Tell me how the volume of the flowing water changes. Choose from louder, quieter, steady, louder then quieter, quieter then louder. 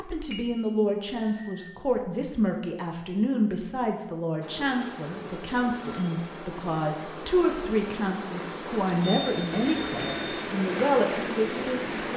louder.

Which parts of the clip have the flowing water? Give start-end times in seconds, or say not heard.
4.4-12.1.